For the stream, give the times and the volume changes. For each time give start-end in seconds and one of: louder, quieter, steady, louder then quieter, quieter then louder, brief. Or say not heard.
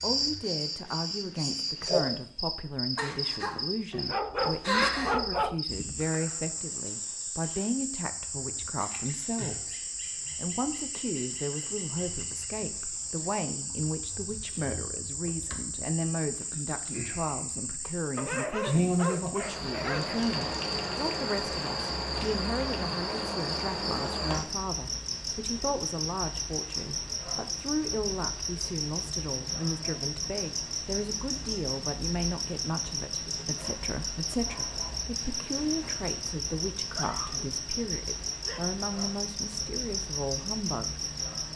not heard.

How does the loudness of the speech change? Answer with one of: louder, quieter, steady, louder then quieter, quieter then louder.
steady.